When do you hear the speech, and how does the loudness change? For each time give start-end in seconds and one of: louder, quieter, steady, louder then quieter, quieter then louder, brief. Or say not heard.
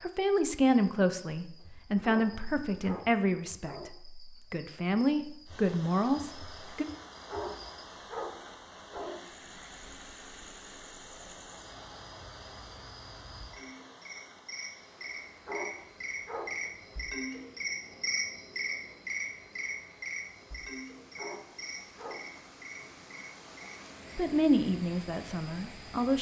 0.0-6.8 steady
24.1-26.1 brief.